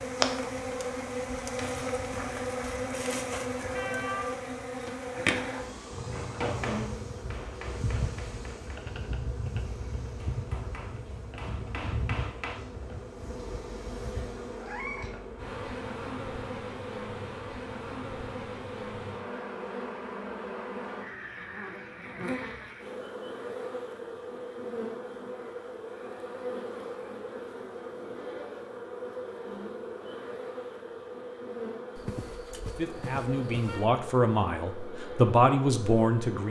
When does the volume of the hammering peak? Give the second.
7 s.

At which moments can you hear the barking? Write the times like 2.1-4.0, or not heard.
not heard.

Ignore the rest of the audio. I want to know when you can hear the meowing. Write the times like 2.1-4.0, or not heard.
3.8-4.4, 14.6-15.2, 31.9-33.9.